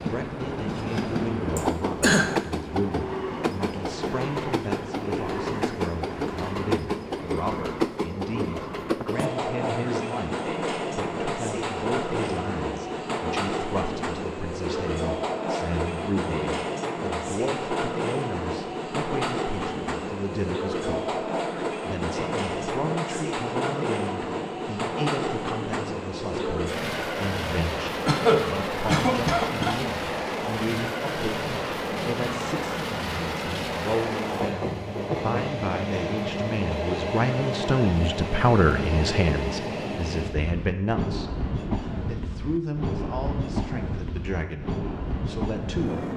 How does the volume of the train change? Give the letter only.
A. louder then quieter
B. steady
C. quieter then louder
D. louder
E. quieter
B.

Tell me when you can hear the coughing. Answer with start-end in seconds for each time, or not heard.
1.6-2.4, 28.1-29.8.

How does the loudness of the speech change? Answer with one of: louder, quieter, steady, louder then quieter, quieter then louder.
louder.